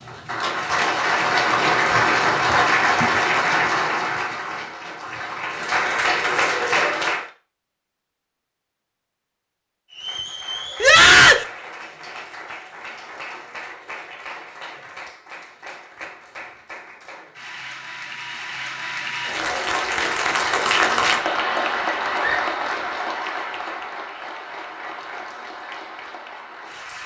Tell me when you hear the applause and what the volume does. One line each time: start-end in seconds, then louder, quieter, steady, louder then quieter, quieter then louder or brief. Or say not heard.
0.0-7.3 quieter then louder
9.9-27.0 louder then quieter.